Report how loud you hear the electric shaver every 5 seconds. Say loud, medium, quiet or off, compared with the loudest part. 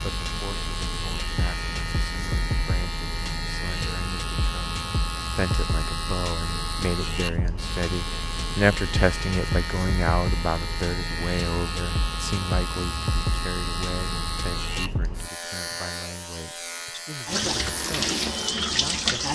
loud, loud, loud, medium.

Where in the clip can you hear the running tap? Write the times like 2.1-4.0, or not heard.
17.2-19.2.